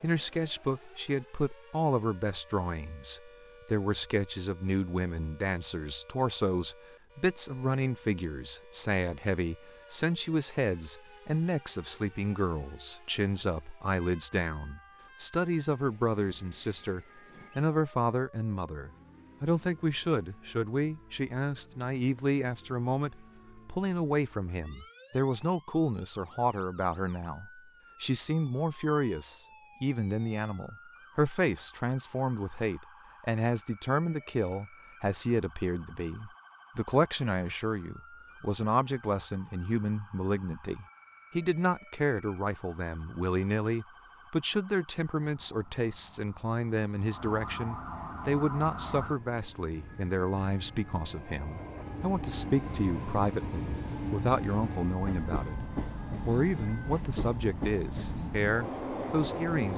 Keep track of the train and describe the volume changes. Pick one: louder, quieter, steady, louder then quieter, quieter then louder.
louder.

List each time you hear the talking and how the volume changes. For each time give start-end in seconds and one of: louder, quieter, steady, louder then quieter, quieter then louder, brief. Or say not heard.
0.0-59.7 steady.